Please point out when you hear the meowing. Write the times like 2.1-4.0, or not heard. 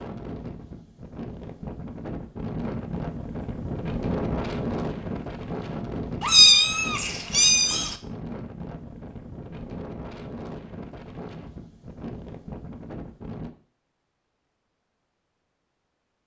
6.2-8.0.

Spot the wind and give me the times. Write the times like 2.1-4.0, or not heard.
0.0-13.5.